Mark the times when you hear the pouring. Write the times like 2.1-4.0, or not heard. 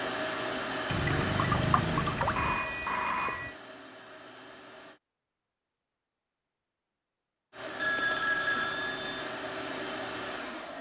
0.9-2.6.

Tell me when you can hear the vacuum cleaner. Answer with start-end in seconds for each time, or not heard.
0.0-5.0, 7.5-10.7.